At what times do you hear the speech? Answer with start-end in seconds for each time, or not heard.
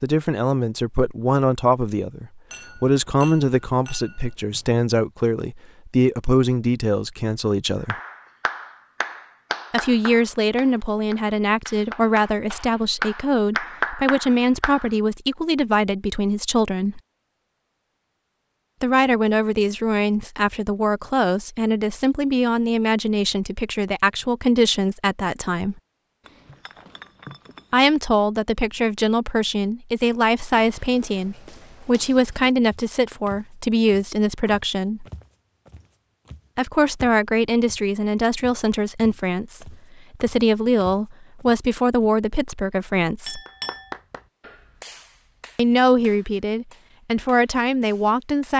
0.0-8.0, 9.7-17.0, 18.8-25.8, 27.7-35.0, 36.5-43.4, 45.5-48.5.